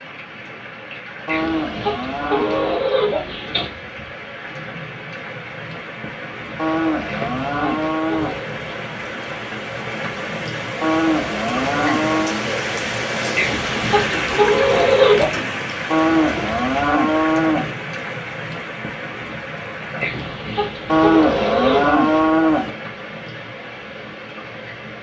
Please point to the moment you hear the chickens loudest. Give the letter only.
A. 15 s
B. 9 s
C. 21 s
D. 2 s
A.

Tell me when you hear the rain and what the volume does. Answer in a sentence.
The rain can be heard from 0.0 to 24.9 s, getting louder then quieter.